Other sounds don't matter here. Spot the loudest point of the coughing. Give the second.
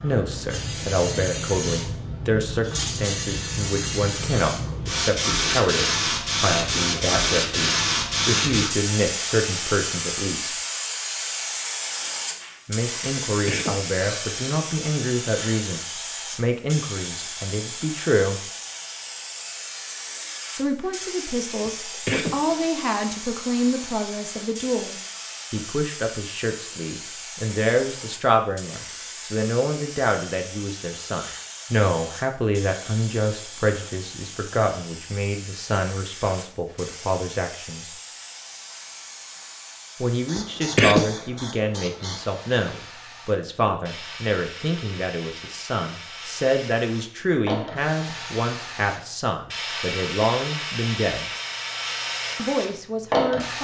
41 s.